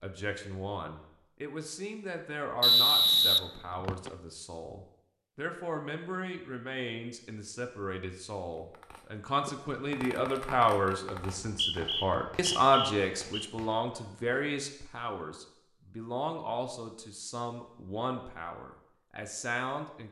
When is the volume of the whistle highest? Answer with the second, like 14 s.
3 s.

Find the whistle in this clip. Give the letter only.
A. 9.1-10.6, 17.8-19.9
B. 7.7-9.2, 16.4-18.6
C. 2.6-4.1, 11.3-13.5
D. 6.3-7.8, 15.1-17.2
C.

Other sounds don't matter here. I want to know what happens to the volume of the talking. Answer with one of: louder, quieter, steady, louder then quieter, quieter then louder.
louder then quieter.